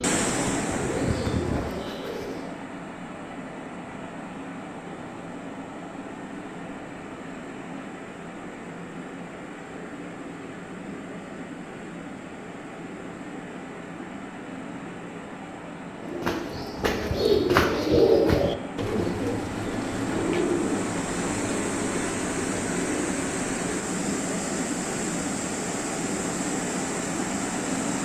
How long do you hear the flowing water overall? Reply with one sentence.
The flowing water can be heard for 28 seconds in total.